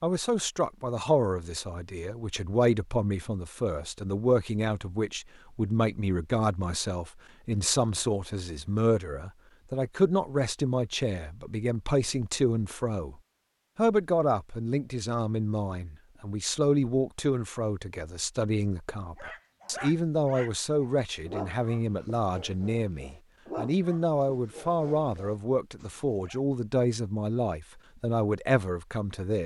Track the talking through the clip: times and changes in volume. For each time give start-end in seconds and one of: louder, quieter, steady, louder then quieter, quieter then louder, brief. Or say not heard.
0.0-29.4 steady.